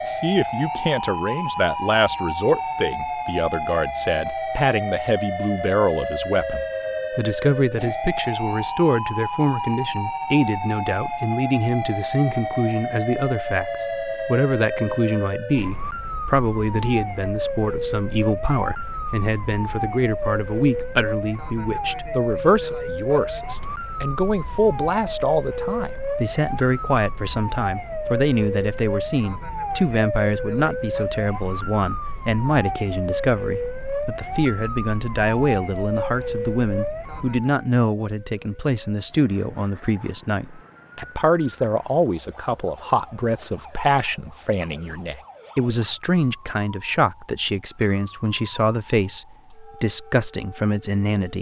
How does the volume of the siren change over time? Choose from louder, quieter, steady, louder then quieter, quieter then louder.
quieter.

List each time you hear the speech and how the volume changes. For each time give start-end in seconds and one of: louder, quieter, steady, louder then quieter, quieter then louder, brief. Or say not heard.
0.0-51.3 steady.